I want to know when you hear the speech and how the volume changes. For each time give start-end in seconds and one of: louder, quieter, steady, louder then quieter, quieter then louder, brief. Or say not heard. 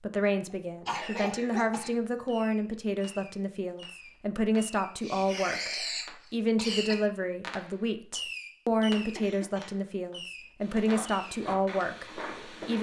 0.0-12.7 steady.